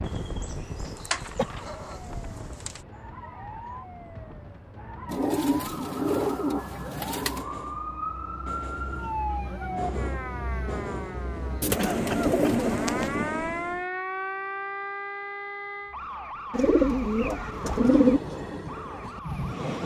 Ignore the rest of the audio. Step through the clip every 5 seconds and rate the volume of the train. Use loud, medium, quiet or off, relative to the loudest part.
medium, medium, loud, loud.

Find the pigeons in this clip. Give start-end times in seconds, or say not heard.
0.1-2.8, 5.0-7.5, 11.6-13.3, 16.5-18.2.